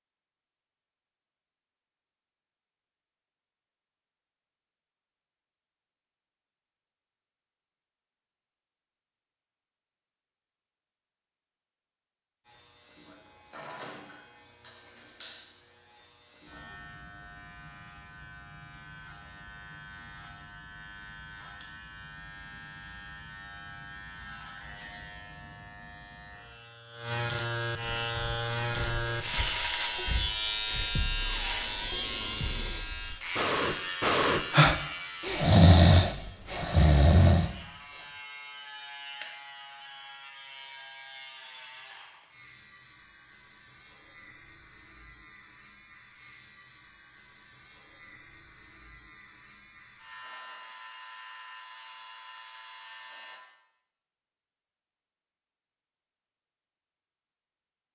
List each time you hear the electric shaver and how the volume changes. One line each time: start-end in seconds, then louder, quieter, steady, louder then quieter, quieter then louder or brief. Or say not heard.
12.4-53.4 louder then quieter.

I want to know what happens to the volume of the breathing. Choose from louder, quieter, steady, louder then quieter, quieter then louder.
louder.